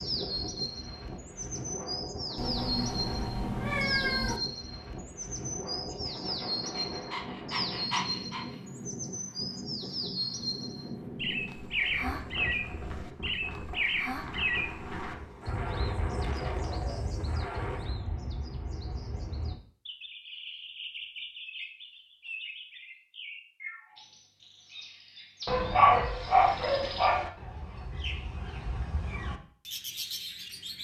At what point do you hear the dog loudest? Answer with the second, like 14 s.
26 s.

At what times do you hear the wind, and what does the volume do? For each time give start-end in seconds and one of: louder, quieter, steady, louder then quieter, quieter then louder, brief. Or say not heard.
0.0-18.0 steady.